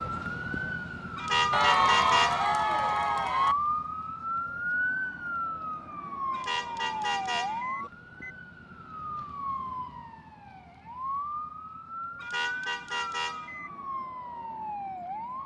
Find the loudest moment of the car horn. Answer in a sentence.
The loudest moment of the car horn is at 2 seconds.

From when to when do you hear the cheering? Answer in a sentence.
The cheering can be heard from 1.5 to 3.5 s.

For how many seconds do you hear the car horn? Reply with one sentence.
The car horn can be heard for 5 seconds in total.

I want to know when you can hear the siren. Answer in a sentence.
You can hear the siren from 0.0 to 15.4 s.